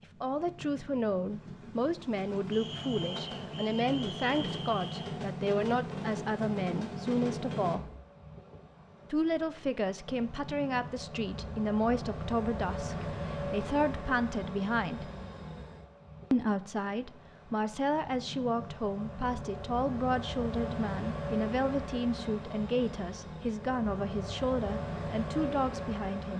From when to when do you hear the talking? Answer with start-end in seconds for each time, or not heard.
0.2-7.8, 9.1-15.1, 16.3-26.3.